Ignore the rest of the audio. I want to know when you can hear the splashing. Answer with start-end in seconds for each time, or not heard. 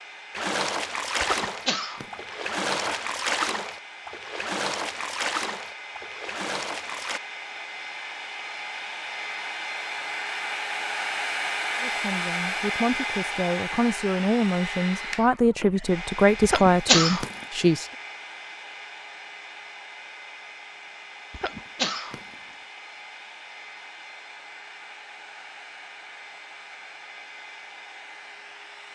0.3-7.2.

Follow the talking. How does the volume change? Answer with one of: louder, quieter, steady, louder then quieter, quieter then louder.
louder.